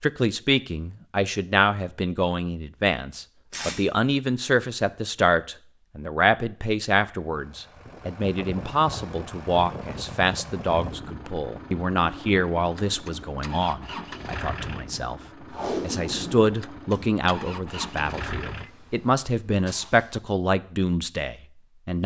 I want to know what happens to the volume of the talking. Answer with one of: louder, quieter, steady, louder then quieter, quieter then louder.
steady.